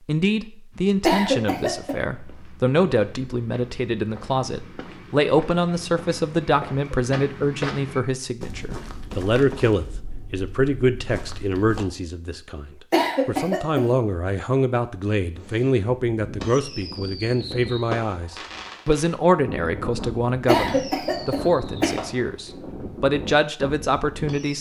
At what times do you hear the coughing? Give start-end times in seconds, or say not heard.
1.0-1.9, 12.9-13.8, 20.4-22.0.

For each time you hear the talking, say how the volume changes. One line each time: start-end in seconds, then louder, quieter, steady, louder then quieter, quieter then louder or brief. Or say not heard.
0.1-24.5 steady.